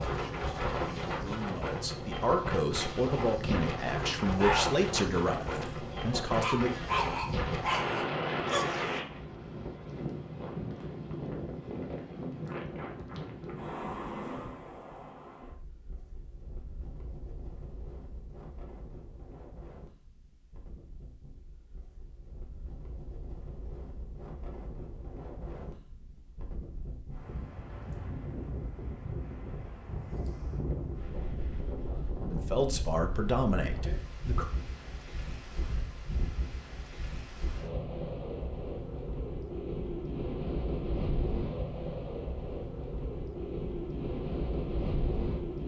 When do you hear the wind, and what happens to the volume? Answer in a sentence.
You can hear the wind from 0.0 to 45.6 s, getting quieter then louder.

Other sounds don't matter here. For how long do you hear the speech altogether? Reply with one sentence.
You can hear the speech for 9 seconds altogether.